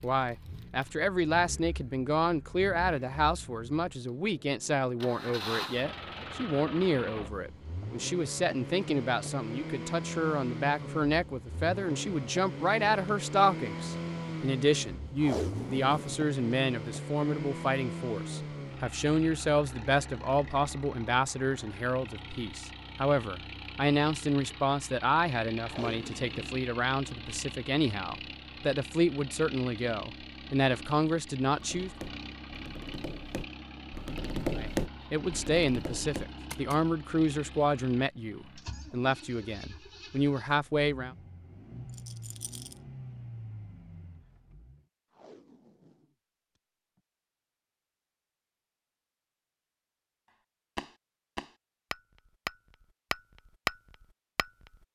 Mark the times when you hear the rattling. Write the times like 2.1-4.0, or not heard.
41.9-42.8.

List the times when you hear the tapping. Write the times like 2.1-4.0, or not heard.
31.5-36.8, 50.8-54.5.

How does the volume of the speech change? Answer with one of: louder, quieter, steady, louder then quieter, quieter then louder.
steady.